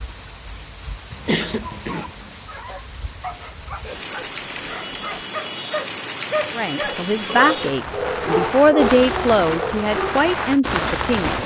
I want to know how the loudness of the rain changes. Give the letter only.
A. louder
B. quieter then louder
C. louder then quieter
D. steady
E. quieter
A.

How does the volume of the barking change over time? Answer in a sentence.
The loudness of the barking goes up.